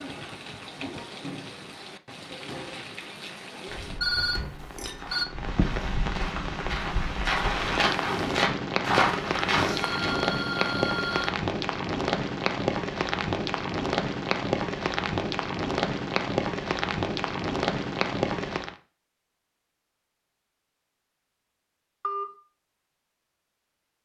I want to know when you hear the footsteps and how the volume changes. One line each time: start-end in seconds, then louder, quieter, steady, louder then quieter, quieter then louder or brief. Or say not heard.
3.6-10.2 louder.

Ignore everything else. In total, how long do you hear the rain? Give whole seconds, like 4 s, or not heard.
19 s.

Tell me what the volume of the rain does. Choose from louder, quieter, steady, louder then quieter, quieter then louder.
louder.